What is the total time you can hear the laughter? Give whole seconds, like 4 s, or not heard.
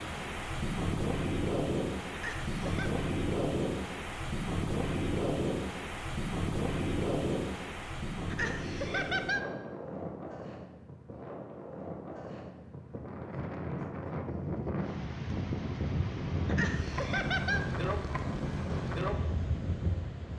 3 s.